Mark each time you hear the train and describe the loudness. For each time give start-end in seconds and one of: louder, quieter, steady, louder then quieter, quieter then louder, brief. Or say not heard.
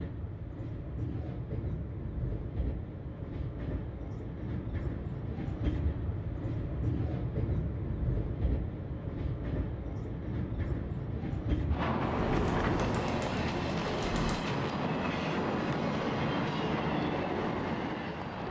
0.0-18.4 louder.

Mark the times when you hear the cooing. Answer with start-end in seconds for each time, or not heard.
12.0-14.4.